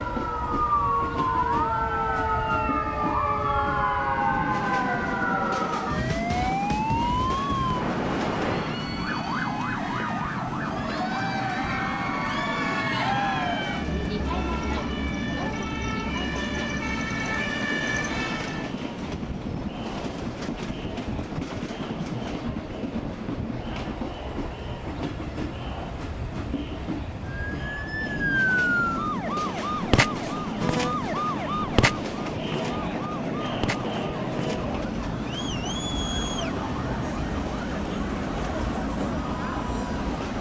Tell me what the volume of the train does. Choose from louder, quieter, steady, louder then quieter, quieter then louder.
steady.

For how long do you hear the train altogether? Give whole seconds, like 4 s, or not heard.
40 s.